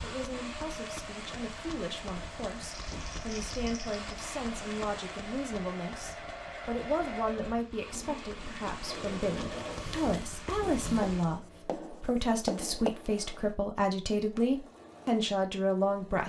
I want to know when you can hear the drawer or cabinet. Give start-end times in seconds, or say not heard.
not heard.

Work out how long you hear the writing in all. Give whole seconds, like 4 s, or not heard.
3 s.